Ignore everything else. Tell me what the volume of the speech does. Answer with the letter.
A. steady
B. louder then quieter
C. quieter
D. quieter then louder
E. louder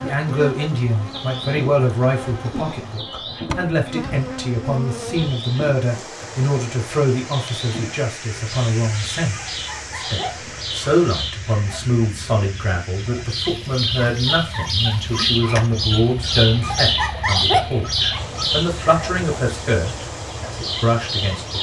A.